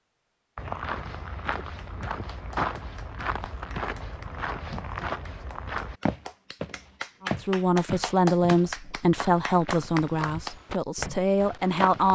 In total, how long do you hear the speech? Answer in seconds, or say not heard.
5 s.